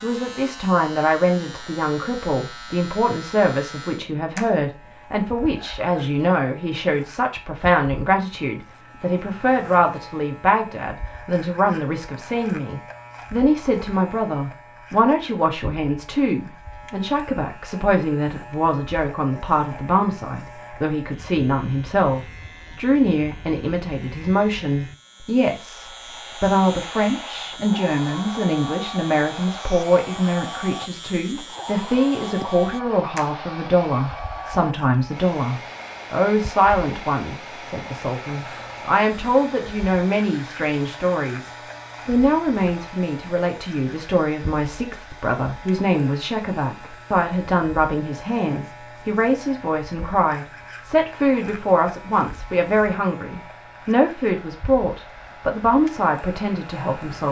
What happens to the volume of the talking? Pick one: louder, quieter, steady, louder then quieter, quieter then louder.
steady.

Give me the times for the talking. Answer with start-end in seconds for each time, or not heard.
0.0-57.2.